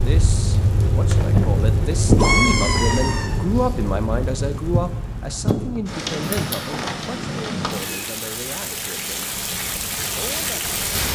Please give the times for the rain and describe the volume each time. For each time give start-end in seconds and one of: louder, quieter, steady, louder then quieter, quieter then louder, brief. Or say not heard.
0.0-11.1 quieter.